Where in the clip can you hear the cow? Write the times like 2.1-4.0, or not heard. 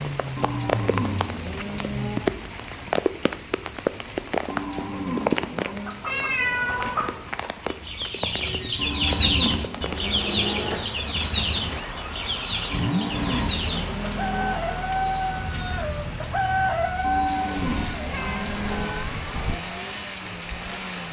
0.3-2.3, 4.5-6.0, 8.8-10.8, 12.7-14.7, 17.0-19.1.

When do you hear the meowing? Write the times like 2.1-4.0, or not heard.
6.0-7.2, 17.6-19.6.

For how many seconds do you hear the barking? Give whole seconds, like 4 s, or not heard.
not heard.